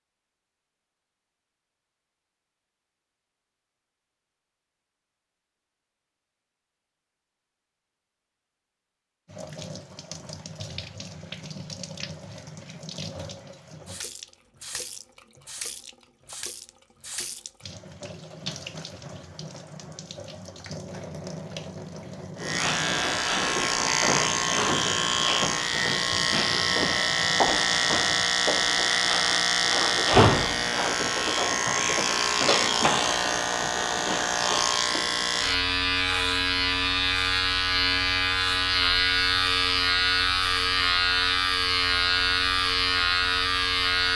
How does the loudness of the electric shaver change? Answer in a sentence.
The loudness of the electric shaver stays about the same.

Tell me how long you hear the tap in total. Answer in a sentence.
The tap can be heard for 19 seconds in total.